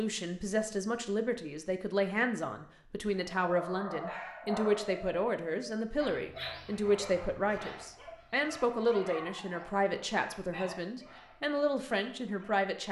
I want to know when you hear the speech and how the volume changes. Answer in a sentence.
You can hear the speech from 0.0 to 12.8 s, at a steady volume.